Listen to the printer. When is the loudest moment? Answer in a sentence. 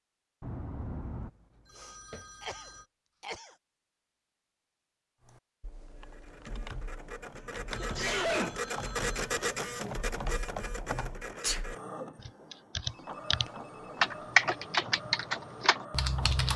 The loudest moment of the printer is at 9 seconds.